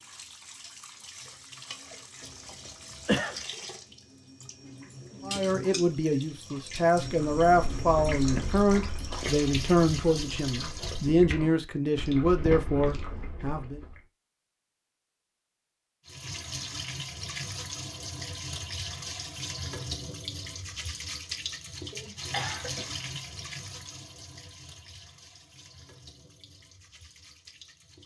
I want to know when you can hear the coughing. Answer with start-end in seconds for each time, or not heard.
2.2-3.4, 21.9-22.9.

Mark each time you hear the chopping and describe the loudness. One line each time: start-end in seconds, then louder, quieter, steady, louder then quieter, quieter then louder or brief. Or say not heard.
not heard.